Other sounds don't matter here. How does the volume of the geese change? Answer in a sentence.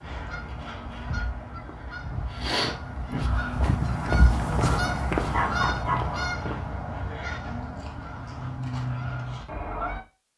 The volume of the geese goes up, then down.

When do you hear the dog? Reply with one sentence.
The dog can be heard from 5.2 to 6.3 s.